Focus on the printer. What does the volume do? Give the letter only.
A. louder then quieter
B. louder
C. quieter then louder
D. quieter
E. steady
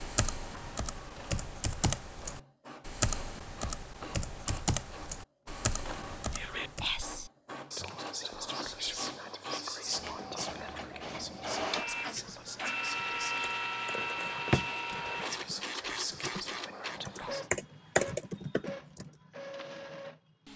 A.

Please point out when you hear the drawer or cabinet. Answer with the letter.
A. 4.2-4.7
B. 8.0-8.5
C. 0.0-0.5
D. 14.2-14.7
D.